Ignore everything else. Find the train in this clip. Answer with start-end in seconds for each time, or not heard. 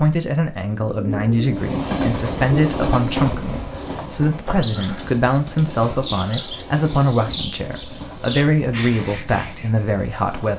1.5-10.5.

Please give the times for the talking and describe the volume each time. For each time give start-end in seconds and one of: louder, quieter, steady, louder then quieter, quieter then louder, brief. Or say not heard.
0.0-10.5 steady.